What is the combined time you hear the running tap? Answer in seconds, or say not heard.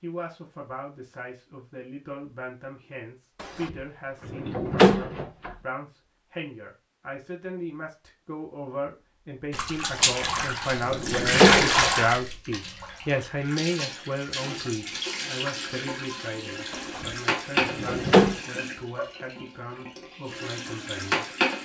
12 s.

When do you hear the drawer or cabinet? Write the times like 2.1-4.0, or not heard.
3.4-5.5, 10.0-11.7, 16.7-18.4.